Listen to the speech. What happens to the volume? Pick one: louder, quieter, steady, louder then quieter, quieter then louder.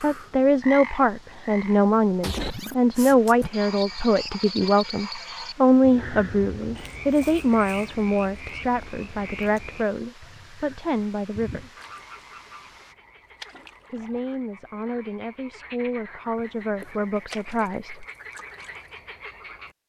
quieter.